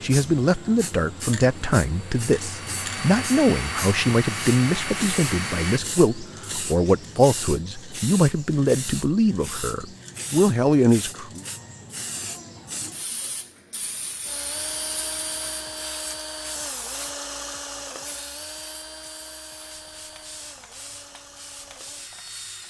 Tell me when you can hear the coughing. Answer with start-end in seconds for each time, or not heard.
not heard.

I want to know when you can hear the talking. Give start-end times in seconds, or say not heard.
0.0-11.4.